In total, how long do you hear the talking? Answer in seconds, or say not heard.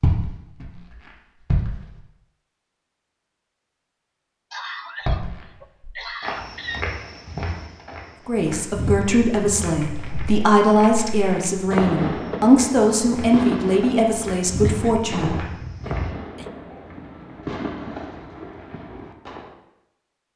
7 s.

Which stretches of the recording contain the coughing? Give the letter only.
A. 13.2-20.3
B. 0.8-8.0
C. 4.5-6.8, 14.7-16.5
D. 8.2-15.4
C.